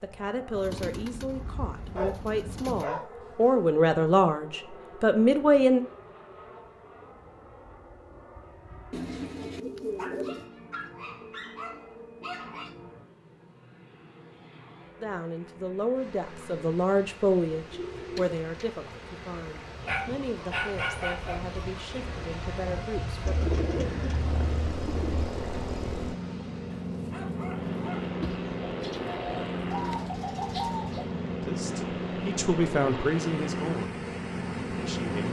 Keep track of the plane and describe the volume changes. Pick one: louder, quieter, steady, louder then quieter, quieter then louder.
louder.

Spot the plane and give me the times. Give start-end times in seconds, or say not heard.
0.0-35.2.